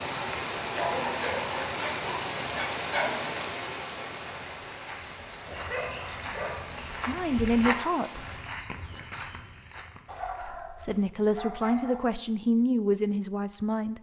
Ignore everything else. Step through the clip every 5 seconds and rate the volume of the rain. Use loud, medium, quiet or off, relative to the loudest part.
loud, medium, off.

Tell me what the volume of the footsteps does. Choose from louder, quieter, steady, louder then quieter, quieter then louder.
louder then quieter.